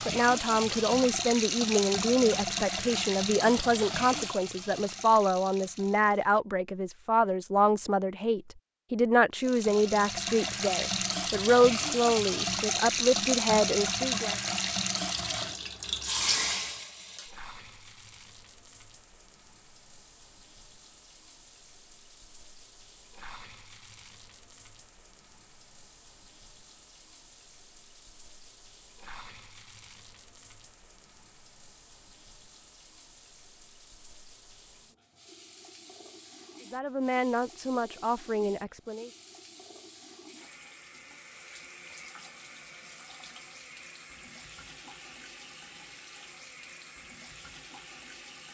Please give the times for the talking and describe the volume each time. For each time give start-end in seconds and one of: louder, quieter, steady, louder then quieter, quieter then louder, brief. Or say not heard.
0.1-14.3 steady
36.7-39.1 brief.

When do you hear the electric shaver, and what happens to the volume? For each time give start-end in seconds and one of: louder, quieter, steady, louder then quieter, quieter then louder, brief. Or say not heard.
not heard.